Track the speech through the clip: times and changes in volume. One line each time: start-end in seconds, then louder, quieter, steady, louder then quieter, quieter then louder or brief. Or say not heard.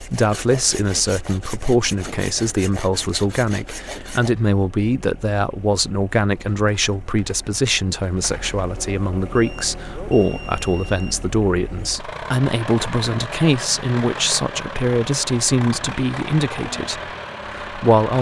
0.0-18.1 steady.